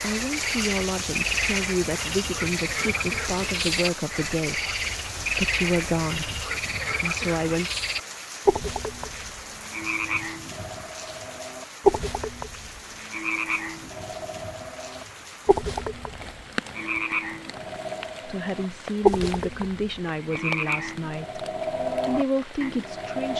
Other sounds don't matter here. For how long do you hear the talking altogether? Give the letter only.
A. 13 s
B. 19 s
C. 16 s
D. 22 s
A.